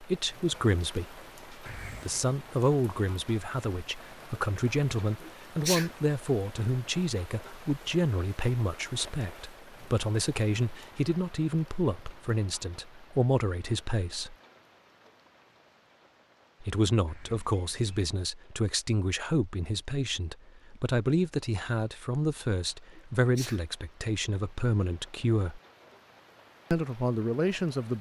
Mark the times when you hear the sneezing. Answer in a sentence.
The sneezing can be heard from 5.2 to 5.9 s and from 22.9 to 23.6 s.